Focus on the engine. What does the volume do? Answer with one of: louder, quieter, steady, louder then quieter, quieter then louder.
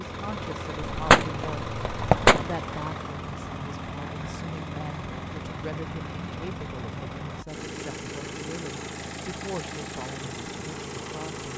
steady.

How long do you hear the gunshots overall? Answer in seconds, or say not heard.
2 s.